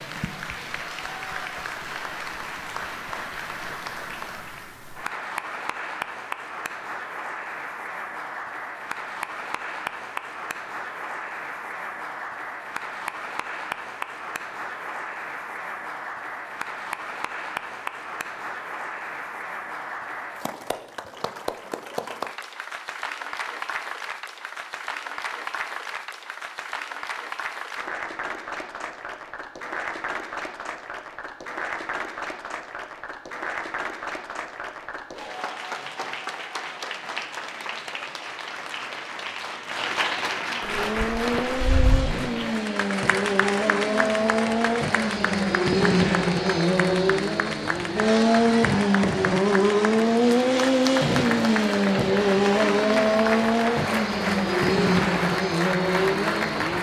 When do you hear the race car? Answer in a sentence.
You can hear the race car from 40.6 to 56.7 s.